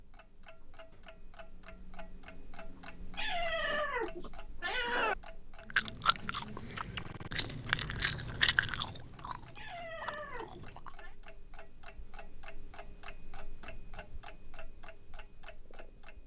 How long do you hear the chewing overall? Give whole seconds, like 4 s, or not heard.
5 s.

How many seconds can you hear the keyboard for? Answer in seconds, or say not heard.
not heard.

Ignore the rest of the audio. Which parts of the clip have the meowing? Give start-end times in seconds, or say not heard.
3.1-5.2, 9.6-11.2.